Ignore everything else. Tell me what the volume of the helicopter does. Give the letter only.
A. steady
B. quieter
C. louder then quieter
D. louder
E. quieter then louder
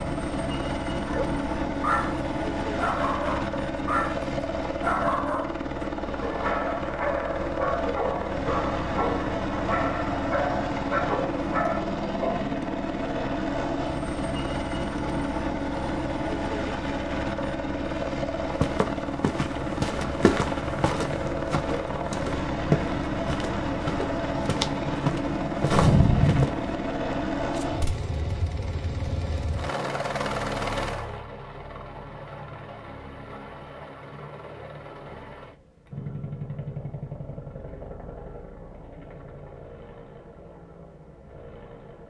B.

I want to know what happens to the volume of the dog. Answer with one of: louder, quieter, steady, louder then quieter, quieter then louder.
steady.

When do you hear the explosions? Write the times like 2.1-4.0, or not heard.
25.6-26.4.